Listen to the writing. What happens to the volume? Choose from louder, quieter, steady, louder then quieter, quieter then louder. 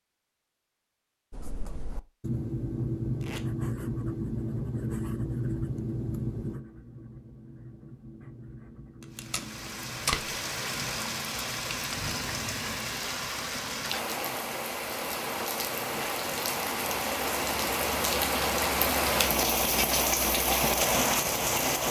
quieter.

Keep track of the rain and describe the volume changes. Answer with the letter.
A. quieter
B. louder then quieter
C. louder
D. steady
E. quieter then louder
C.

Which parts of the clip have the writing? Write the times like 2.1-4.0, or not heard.
1.3-13.0.